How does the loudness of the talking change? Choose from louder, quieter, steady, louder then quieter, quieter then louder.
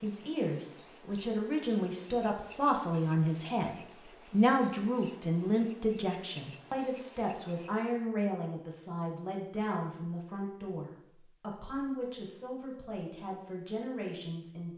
quieter.